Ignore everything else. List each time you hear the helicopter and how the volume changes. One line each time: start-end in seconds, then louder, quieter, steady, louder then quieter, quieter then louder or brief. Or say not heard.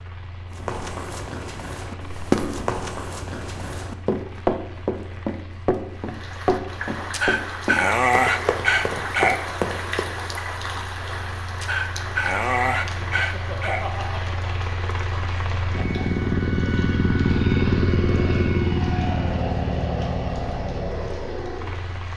0.0-22.1 louder.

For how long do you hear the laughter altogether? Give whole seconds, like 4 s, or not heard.
2 s.